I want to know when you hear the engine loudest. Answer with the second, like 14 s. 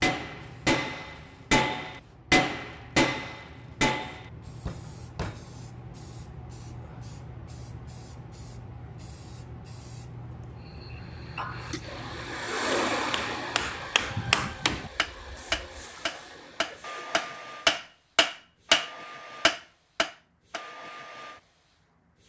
13 s.